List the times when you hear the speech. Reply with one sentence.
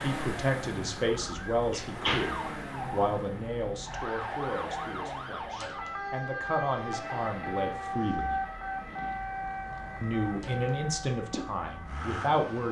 You can hear the speech from 0.0 to 8.3 s and from 10.0 to 12.6 s.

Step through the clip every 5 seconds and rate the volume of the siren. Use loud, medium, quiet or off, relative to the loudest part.
loud, loud, medium.